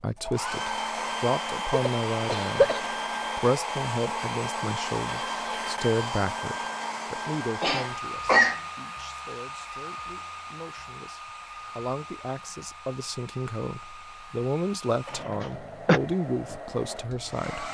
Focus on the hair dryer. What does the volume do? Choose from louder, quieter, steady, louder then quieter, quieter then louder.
quieter.